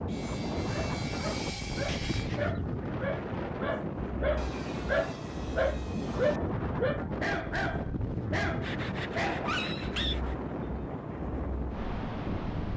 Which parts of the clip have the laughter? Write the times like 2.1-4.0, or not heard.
not heard.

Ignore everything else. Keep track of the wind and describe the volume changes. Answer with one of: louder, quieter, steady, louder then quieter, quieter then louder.
steady.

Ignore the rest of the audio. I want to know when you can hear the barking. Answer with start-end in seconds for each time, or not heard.
0.7-10.2.